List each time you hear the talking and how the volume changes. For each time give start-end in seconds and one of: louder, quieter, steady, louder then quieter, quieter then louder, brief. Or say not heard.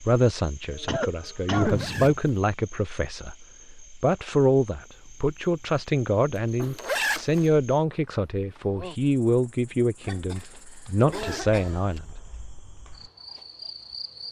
0.0-12.1 steady.